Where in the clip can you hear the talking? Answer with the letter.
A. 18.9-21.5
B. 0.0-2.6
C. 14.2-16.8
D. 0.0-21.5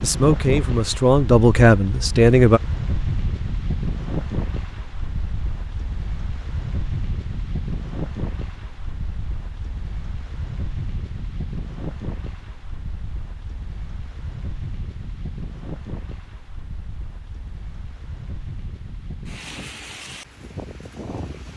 B.